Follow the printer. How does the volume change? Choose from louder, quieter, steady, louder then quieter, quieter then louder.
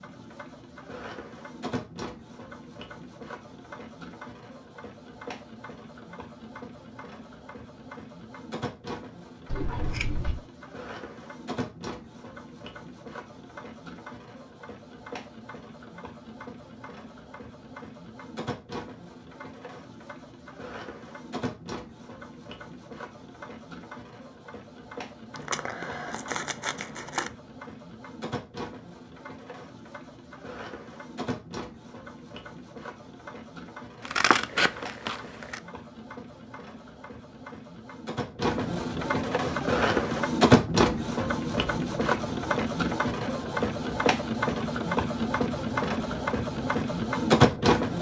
louder.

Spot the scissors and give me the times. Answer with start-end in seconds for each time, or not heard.
9.4-10.4, 25.4-27.3, 34.0-35.6.